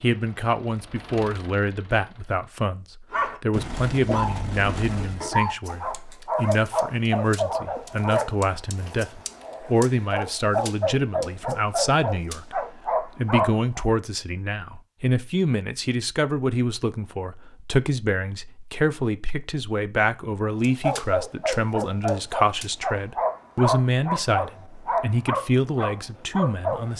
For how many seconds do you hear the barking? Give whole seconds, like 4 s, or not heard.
17 s.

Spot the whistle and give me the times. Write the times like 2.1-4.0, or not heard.
not heard.